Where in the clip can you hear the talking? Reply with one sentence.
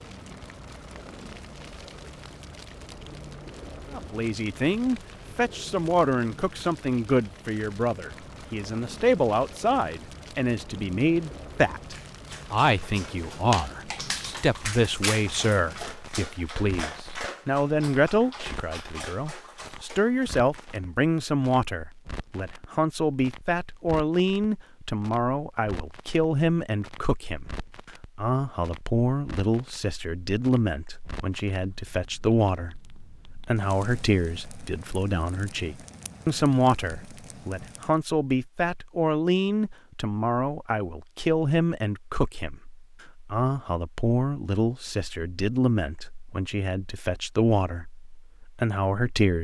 You can hear the talking from 3.9 to 49.3 s.